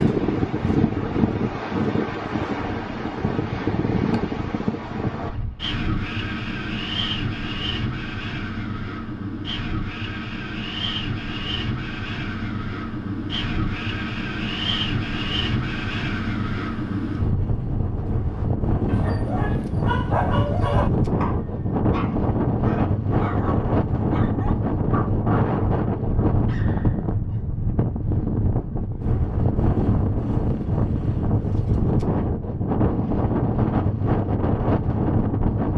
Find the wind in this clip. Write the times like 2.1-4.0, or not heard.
0.0-35.7.